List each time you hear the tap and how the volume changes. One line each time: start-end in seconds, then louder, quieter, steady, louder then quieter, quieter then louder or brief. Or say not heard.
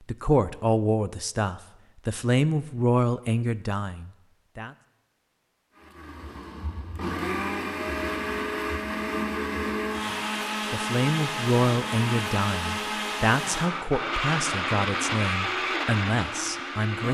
not heard.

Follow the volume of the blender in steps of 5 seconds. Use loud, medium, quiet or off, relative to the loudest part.
off, loud, loud, loud.